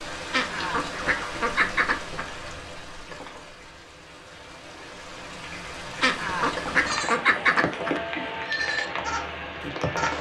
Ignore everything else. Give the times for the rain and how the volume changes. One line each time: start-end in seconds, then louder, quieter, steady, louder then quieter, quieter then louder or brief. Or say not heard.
0.0-10.1 quieter then louder.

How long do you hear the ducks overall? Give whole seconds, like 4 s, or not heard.
4 s.